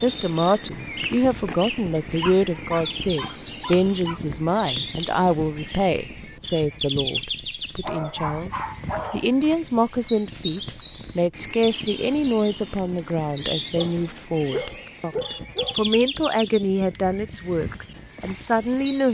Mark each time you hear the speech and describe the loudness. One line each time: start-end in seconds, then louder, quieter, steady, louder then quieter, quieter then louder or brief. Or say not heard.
0.0-19.0 steady.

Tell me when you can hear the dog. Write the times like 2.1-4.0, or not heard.
2.2-4.2, 7.8-9.4, 13.8-15.8.